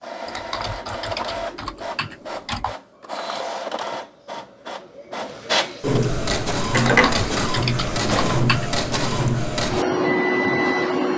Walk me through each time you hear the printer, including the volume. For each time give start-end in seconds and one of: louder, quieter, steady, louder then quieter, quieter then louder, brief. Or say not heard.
0.0-11.1 louder.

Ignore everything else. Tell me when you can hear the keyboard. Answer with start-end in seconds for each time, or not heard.
0.2-2.8, 6.8-8.8.